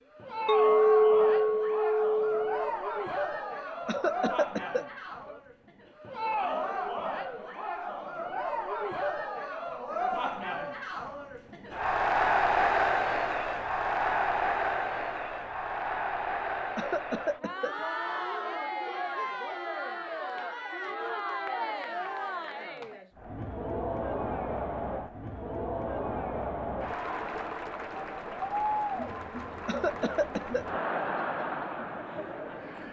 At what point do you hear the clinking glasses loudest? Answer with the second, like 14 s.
1 s.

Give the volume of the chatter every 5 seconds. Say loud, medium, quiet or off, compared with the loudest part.
medium, medium, loud, medium, medium, medium, medium.